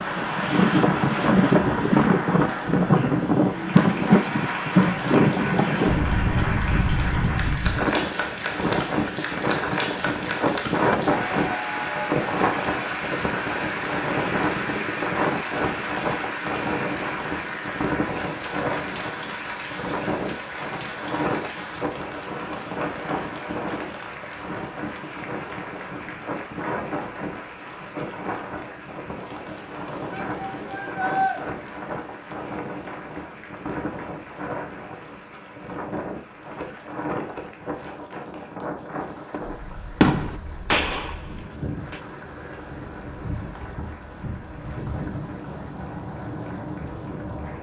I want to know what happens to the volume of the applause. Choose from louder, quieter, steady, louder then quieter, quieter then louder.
quieter.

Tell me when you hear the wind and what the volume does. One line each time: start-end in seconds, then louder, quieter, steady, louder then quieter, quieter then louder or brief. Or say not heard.
0.0-47.5 quieter.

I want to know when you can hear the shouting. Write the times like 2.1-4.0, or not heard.
30.1-31.4.